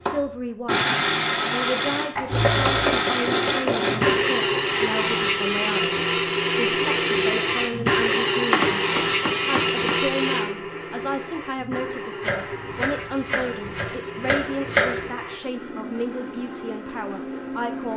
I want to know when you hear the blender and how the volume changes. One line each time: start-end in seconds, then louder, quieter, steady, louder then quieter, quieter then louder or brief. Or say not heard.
0.1-17.9 quieter.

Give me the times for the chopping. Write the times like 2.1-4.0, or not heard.
2.6-4.2, 8.5-10.0, 12.2-15.1.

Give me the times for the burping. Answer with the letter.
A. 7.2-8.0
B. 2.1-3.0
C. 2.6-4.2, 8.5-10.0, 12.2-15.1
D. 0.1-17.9
B.